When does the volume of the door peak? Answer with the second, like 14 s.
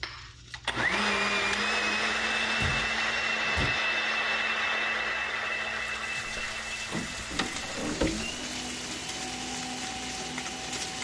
8 s.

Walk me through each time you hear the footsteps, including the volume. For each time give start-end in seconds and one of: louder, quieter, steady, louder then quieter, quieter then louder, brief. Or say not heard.
not heard.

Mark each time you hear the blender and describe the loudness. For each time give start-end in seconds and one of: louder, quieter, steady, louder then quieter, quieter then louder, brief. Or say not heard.
0.0-10.9 quieter.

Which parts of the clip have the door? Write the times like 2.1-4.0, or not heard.
2.3-3.8, 6.2-8.3.